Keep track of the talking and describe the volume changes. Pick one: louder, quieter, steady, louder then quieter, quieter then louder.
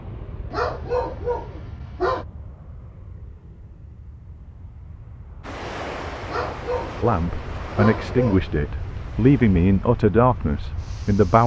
louder then quieter.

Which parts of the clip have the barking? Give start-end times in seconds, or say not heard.
0.5-2.2, 6.2-8.4.